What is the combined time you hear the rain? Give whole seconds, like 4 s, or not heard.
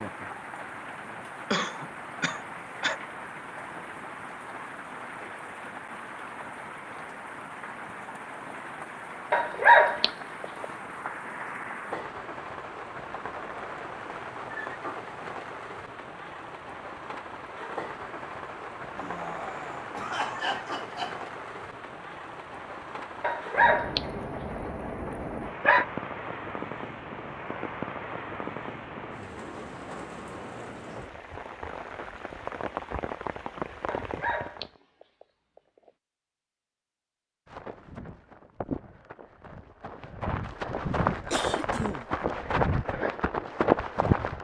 35 s.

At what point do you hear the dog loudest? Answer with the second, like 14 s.
10 s.